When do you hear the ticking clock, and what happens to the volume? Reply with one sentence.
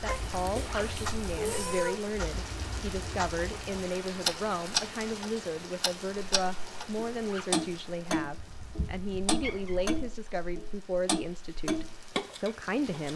You can hear the ticking clock from 0.0 to 13.1 s, getting louder.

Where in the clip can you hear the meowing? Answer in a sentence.
The meowing can be heard from 0.1 to 1.9 s and from 8.3 to 10.1 s.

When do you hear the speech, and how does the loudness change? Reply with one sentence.
The speech can be heard from 0.0 to 13.1 s, at a steady volume.